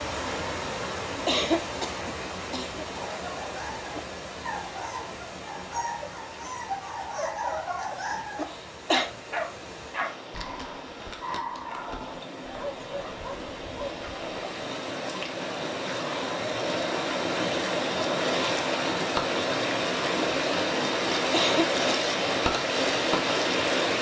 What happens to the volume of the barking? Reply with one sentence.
The loudness of the barking goes up, then down.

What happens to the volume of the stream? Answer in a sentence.
The volume of the stream goes down, then up.